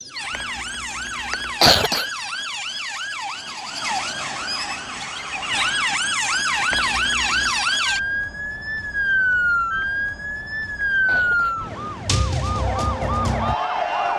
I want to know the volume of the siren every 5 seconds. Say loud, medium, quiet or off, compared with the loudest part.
medium, loud, loud.